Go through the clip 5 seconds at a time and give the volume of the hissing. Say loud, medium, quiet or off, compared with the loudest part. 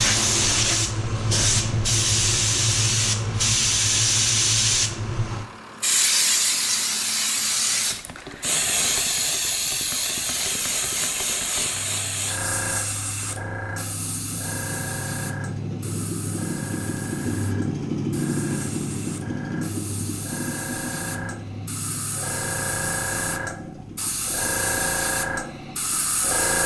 loud, loud, medium, quiet, medium, medium.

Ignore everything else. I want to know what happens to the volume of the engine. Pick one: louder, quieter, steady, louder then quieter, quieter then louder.
louder then quieter.